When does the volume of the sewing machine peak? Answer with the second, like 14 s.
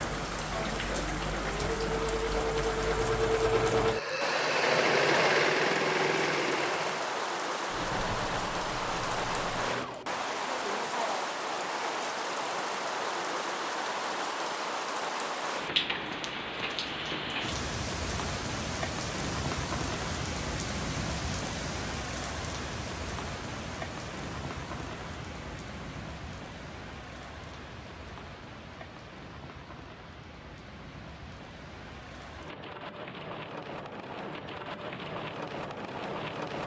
5 s.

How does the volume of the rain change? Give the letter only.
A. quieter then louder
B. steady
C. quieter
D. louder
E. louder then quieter
C.